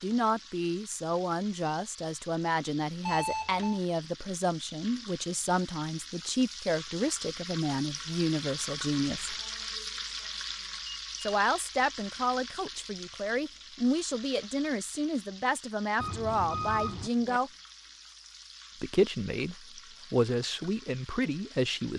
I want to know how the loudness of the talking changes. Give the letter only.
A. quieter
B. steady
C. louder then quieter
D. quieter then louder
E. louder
B.